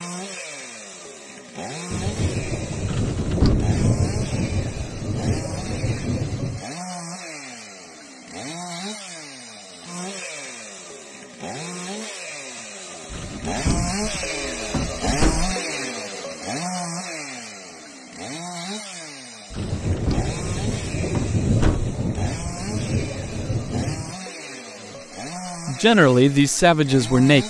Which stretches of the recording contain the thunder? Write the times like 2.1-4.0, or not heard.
1.9-6.7, 19.6-24.1.